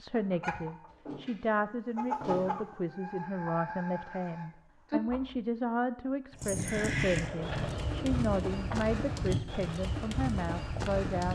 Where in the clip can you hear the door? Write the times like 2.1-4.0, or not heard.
0.9-2.8, 7.2-8.8.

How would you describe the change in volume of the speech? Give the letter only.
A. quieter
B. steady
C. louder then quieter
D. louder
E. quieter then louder
B.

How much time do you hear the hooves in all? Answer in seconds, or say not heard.
5 s.